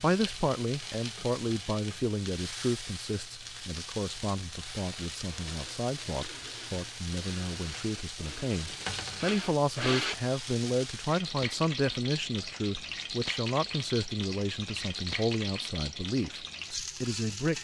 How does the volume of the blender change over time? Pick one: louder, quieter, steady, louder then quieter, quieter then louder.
louder.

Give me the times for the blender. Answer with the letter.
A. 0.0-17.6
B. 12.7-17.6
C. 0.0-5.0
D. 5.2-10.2
D.